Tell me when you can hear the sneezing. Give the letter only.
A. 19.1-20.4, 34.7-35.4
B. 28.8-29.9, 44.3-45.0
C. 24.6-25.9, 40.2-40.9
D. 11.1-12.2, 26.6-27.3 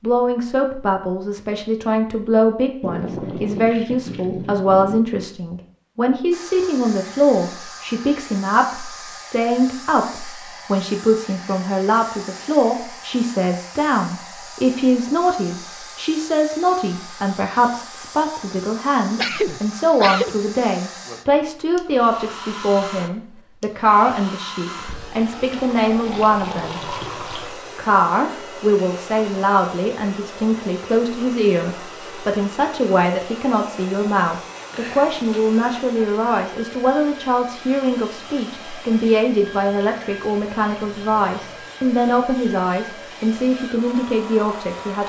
A.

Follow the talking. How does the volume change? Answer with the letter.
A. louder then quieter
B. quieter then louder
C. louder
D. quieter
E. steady
E.